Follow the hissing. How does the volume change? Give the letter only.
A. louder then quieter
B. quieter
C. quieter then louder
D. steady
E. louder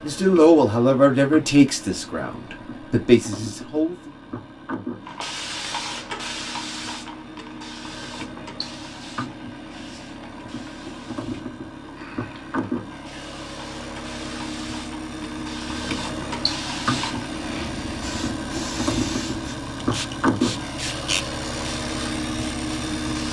C.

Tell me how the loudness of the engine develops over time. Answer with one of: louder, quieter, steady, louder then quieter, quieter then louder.
louder.